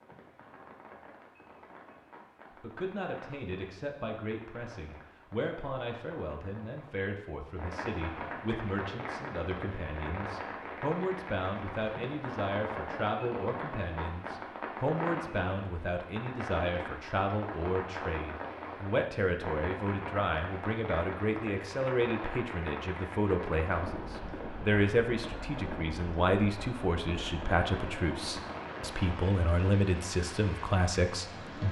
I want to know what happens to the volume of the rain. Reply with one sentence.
The volume of the rain goes up.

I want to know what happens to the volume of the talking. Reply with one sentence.
The loudness of the talking goes up.